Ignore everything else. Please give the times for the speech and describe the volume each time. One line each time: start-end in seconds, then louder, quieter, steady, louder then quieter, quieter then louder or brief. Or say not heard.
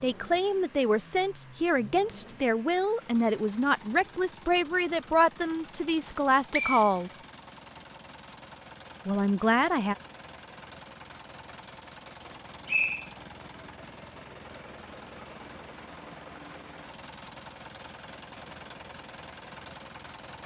0.0-7.2 steady
9.1-9.9 brief.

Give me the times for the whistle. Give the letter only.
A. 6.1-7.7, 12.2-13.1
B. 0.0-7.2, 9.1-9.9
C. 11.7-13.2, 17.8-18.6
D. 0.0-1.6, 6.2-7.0
A.